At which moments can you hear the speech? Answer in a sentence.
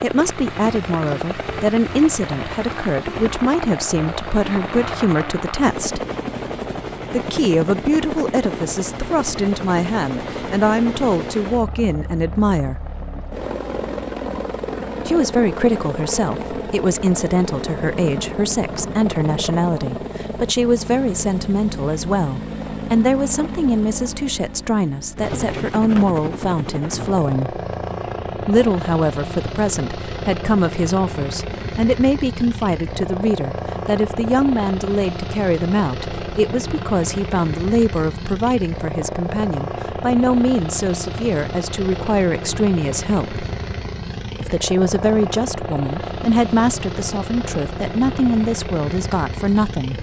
The speech can be heard from 0.0 to 6.0 s, from 7.1 to 12.8 s, from 15.1 to 27.6 s, from 28.4 to 43.5 s and from 44.4 to 49.9 s.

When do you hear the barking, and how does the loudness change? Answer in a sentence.
The barking can't be heard in this clip.